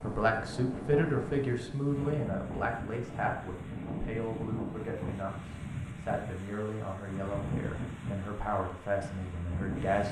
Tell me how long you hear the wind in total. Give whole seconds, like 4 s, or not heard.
10 s.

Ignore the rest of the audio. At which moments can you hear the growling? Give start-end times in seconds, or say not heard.
not heard.